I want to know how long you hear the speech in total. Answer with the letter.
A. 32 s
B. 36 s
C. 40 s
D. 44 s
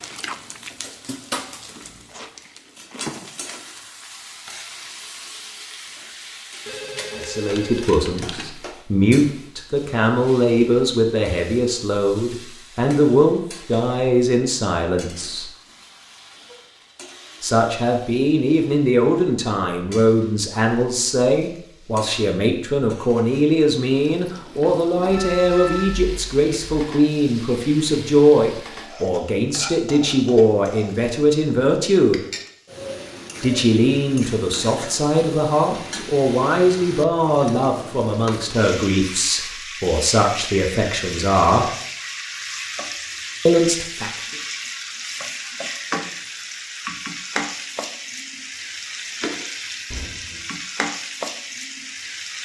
A.